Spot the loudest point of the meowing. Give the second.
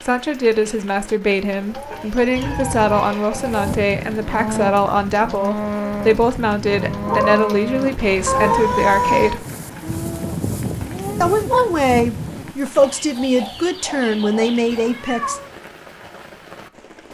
9 s.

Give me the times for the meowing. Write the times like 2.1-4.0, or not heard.
2.4-3.1, 8.0-9.3, 14.7-15.4.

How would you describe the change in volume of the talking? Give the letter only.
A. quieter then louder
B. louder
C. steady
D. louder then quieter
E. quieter
C.